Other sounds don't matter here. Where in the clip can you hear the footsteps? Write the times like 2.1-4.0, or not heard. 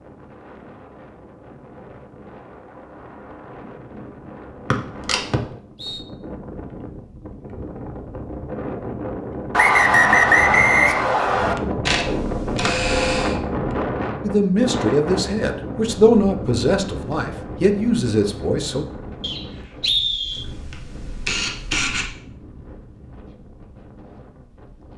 not heard.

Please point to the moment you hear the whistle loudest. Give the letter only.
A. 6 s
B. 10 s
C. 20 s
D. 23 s
B.